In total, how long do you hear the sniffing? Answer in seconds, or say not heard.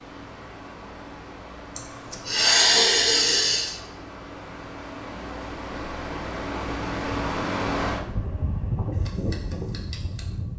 2 s.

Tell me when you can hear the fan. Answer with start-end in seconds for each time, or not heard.
0.0-10.5.